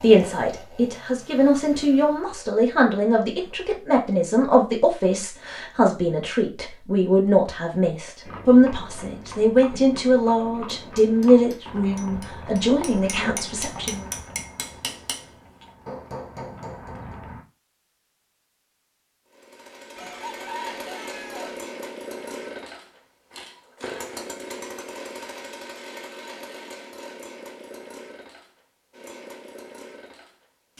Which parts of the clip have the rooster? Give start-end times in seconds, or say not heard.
19.9-21.6.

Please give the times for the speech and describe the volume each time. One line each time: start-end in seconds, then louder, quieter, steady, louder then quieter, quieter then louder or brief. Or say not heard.
0.0-14.1 steady.